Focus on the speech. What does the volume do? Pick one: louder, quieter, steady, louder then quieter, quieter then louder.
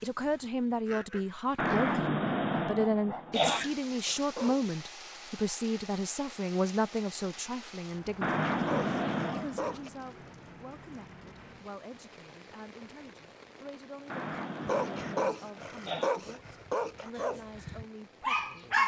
quieter.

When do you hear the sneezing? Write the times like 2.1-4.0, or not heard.
1.6-3.8, 8.2-9.8, 14.1-16.1.